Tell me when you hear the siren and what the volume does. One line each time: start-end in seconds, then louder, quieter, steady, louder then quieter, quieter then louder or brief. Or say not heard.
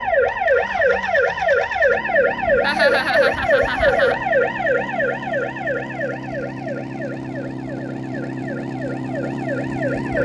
0.0-10.2 quieter.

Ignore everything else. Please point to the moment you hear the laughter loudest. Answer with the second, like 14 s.
3 s.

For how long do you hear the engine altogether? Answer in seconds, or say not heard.
10 s.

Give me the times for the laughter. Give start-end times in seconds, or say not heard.
2.6-4.2.